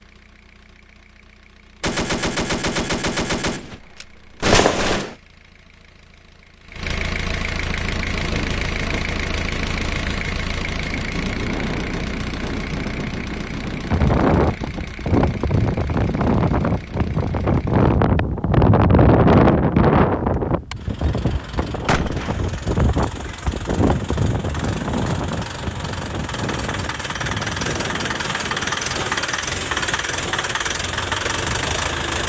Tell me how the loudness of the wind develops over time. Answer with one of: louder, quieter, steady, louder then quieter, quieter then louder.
louder then quieter.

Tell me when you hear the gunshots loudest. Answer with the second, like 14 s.
5 s.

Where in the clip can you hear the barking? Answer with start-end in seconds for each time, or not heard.
not heard.